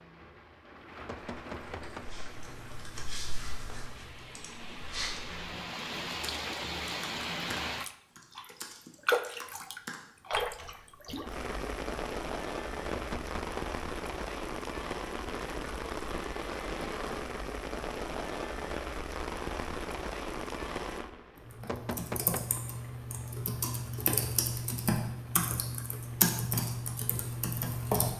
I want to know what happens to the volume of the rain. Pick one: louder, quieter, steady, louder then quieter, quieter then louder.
louder then quieter.